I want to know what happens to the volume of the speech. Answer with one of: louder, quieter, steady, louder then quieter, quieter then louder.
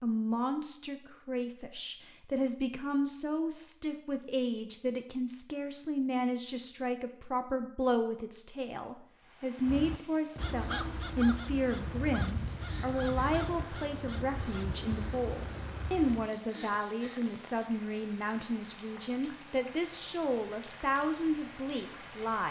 steady.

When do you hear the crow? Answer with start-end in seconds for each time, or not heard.
9.7-16.3.